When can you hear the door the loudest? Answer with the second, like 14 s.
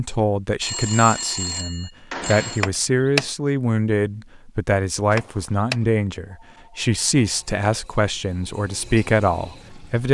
3 s.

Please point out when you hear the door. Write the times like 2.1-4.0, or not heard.
2.6-3.3, 5.2-5.8.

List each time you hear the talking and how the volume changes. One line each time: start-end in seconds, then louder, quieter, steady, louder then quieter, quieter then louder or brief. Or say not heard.
0.0-10.0 steady.